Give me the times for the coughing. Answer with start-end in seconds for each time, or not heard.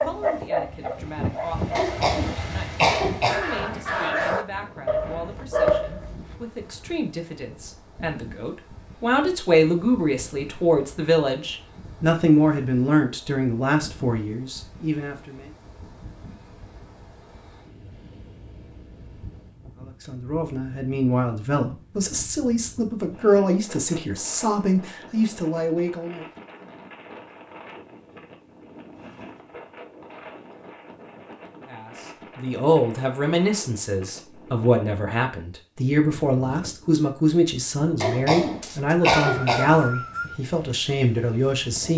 1.8-3.5, 38.0-39.8.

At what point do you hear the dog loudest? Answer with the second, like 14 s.
6 s.